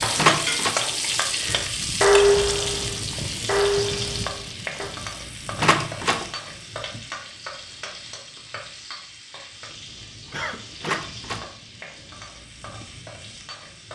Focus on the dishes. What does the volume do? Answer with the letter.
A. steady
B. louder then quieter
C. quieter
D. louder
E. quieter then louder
B.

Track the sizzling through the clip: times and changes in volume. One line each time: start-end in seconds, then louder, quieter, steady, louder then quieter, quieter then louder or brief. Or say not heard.
0.0-13.9 quieter.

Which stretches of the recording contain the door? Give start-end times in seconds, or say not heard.
0.1-0.8, 5.6-6.2, 10.8-11.5.